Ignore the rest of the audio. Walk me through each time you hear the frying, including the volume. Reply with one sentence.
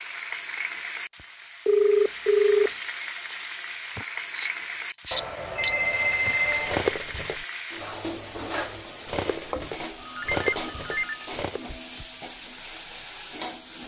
You can hear the frying from 0.0 to 13.8 s, at a steady volume.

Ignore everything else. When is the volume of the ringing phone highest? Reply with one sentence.
The loudest moment of the ringing phone is at 2 seconds.